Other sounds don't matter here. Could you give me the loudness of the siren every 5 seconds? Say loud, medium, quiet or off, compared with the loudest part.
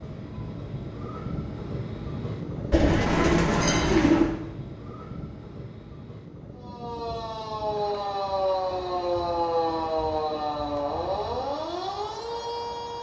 off, loud, loud.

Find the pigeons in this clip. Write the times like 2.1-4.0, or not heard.
2.7-4.3.